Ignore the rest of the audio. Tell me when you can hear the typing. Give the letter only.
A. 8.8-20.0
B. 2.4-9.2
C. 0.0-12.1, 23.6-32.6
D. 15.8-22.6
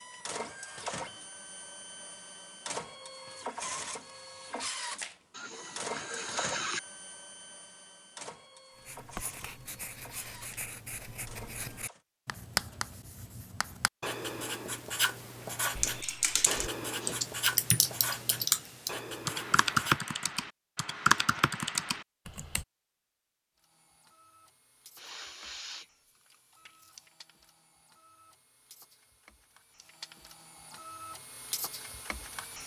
D.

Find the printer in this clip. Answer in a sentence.
You can hear the printer from 0.0 to 12.1 s and from 23.6 to 32.6 s.